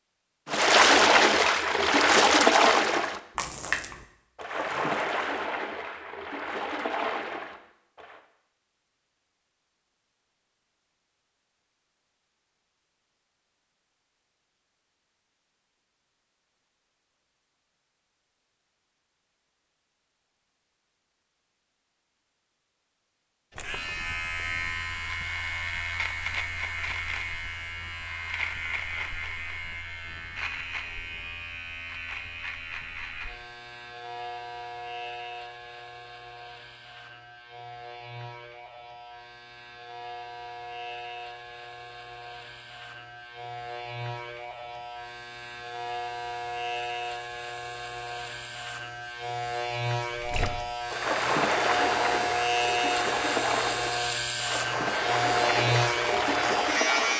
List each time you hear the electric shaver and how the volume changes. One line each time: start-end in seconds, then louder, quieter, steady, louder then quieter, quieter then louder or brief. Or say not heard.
23.6-57.1 quieter then louder.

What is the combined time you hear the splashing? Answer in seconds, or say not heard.
15 s.